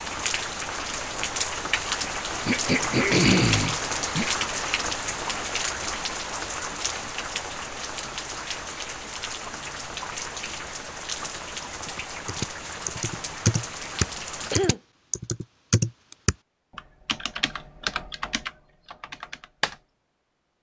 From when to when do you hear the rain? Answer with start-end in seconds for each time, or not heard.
0.0-14.8.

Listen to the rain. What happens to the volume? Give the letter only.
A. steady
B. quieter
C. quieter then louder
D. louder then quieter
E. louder
B.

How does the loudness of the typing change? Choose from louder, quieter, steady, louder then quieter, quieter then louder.
quieter.